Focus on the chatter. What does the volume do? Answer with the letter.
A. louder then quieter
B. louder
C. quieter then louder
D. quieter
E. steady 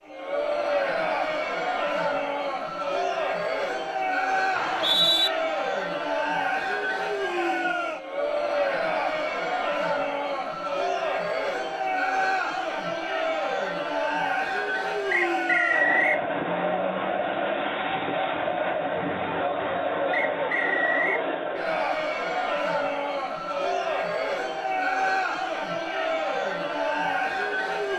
E.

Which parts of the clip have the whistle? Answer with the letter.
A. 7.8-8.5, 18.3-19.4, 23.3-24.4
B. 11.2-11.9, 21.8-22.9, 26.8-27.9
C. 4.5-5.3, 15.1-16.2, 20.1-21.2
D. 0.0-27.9
C.